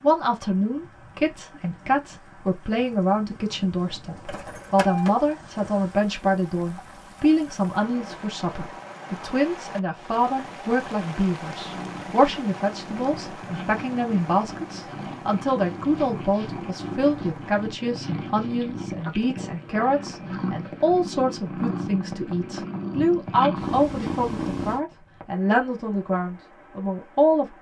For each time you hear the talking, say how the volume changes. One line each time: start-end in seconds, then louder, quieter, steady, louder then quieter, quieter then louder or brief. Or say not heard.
0.0-27.5 steady.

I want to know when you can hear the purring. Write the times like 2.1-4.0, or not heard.
11.6-24.8.